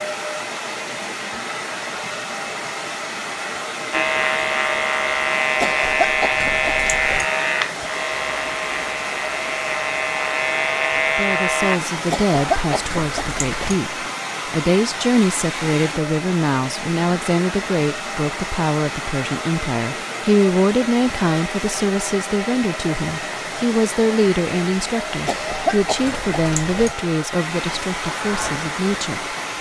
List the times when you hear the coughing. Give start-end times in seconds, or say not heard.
5.6-7.2, 12.1-13.8, 25.2-26.9.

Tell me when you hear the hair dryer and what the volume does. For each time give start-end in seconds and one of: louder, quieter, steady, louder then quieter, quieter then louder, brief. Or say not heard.
0.0-29.5 steady.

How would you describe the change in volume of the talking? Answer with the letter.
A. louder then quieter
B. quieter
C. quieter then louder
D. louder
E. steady
E.